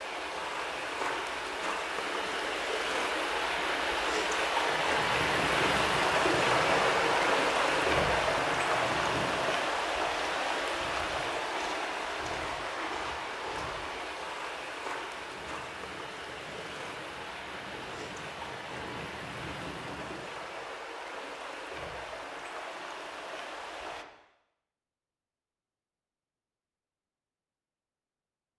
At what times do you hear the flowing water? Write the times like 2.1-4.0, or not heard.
0.0-24.1.